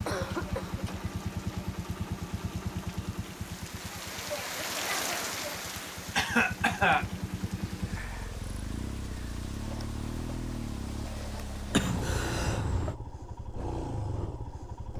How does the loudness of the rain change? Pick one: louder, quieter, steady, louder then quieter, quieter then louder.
louder then quieter.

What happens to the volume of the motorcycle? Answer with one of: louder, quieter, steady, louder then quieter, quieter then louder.
quieter then louder.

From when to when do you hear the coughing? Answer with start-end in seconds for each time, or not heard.
0.1-1.0, 6.2-7.0, 11.7-12.9.